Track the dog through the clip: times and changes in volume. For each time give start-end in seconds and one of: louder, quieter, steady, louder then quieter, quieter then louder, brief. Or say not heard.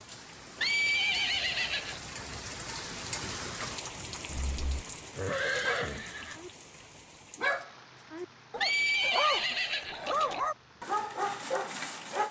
5.6-12.2 louder.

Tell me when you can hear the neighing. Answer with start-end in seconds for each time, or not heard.
0.6-2.0, 4.2-6.4, 8.6-10.4.